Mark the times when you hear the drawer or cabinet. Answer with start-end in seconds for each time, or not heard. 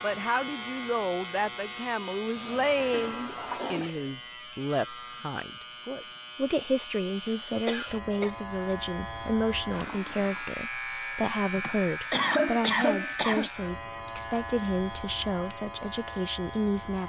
not heard.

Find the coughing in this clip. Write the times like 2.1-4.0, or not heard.
2.9-3.9, 7.7-8.3, 11.6-13.5.